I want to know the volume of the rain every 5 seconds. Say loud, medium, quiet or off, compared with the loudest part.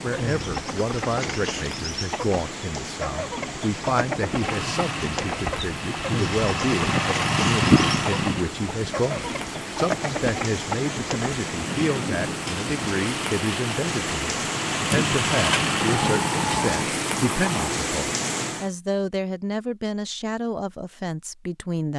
medium, medium, loud, loud, off.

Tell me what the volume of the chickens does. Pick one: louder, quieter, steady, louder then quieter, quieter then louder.
steady.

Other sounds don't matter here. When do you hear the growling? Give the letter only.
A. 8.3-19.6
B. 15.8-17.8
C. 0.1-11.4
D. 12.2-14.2
B.